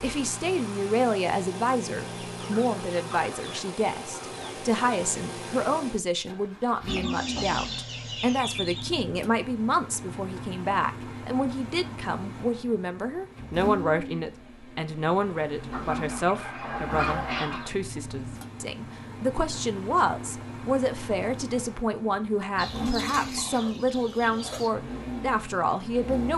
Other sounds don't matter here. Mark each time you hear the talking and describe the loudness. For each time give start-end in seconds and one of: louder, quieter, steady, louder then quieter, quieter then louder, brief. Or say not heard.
0.0-26.3 steady.